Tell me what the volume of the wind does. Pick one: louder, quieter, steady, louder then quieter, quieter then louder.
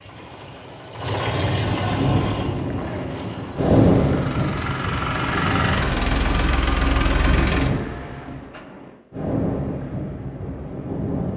quieter.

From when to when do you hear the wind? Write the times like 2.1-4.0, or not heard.
1.9-11.3.